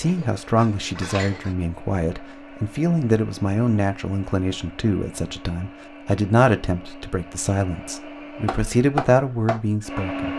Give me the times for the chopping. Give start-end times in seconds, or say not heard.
8.4-10.1.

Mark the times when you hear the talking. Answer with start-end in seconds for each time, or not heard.
0.0-10.3.